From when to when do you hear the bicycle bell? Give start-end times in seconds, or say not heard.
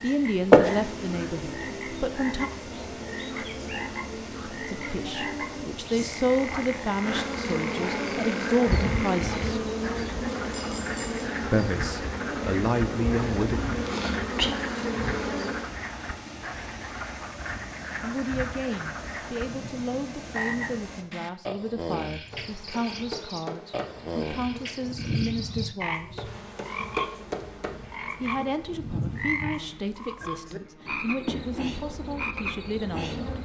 10.5-11.2.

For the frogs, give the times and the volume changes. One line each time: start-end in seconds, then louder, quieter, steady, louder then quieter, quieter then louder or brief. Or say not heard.
0.0-33.4 steady.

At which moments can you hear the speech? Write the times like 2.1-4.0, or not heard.
0.0-2.5, 4.7-9.6, 11.4-13.6, 18.0-26.3, 28.2-33.4.